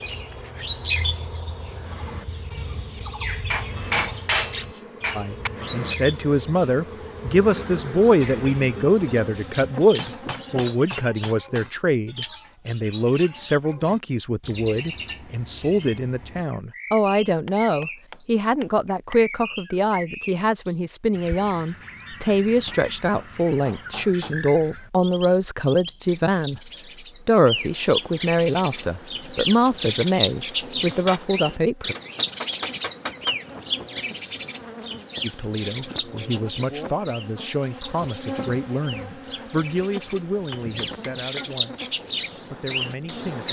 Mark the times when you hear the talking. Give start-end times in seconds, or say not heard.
5.2-31.9, 35.2-43.4.